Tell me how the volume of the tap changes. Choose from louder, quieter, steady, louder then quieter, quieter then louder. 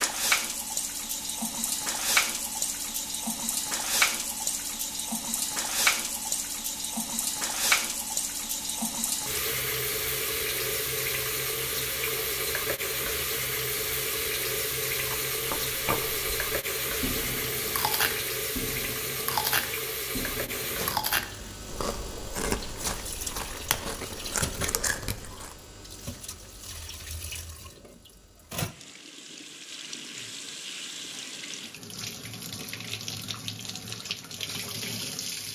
quieter.